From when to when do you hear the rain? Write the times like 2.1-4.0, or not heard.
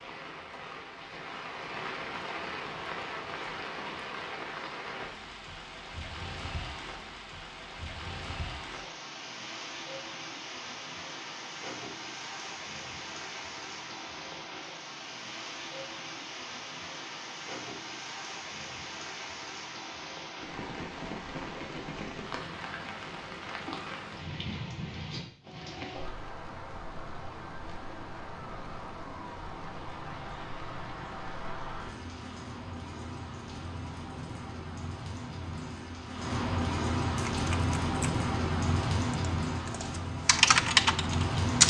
0.0-41.6.